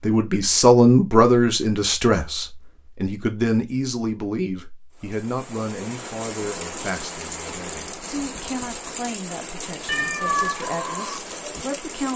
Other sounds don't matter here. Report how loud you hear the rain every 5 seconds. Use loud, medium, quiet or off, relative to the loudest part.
off, loud, loud.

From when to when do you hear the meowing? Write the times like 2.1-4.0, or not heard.
9.8-10.7.